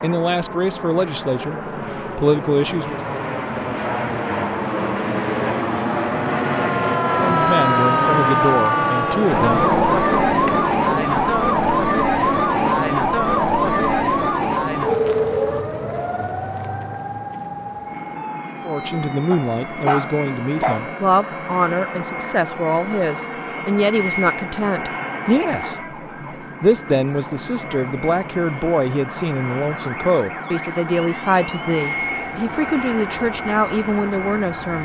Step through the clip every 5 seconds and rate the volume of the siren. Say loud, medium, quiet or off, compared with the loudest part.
off, loud, loud, medium, quiet, quiet, quiet.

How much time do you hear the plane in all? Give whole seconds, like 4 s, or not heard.
35 s.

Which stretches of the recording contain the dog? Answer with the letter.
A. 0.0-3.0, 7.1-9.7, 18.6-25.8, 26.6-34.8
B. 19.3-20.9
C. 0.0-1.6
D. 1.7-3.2
B.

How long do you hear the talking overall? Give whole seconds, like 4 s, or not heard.
21 s.